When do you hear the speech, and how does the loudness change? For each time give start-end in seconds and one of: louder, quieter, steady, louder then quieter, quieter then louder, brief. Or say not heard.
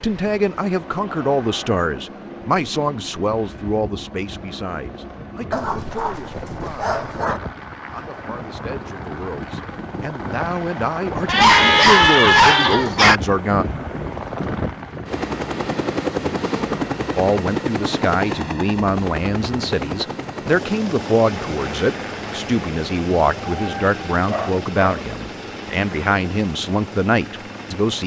0.0-13.7 quieter then louder
17.1-28.0 steady.